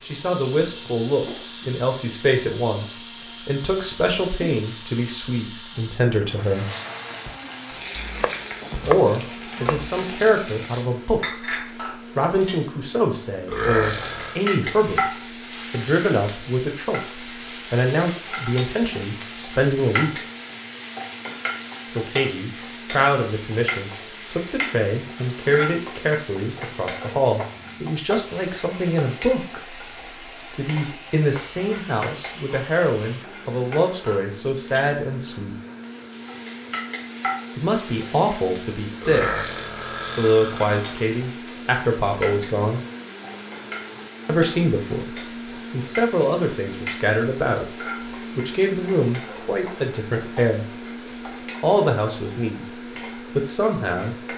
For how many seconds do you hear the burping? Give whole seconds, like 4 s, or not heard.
3 s.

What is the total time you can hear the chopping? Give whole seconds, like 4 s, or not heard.
2 s.